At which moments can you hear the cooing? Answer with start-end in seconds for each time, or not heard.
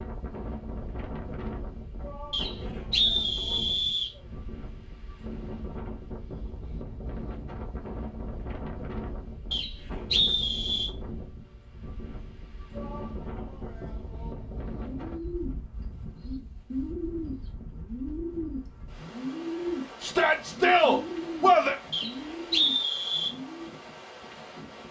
14.9-23.8.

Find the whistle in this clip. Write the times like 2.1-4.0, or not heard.
2.3-4.1, 9.5-10.9, 21.9-23.3.